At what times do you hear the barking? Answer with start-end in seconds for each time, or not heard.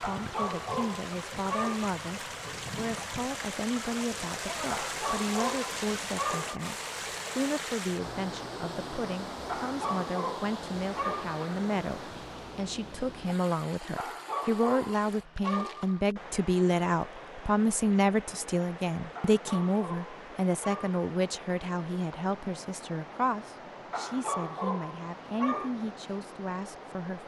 0.0-1.9, 4.7-6.7, 9.4-11.4, 13.9-16.1, 19.1-20.9, 23.9-25.8.